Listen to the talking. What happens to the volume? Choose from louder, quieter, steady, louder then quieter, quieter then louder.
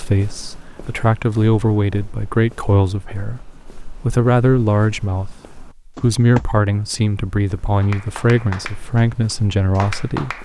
steady.